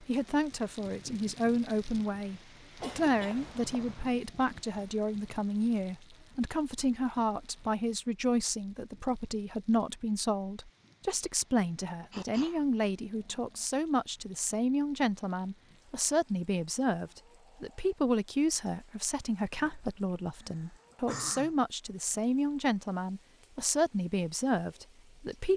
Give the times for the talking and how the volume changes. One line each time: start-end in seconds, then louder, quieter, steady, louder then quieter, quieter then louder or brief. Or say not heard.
0.0-25.5 steady.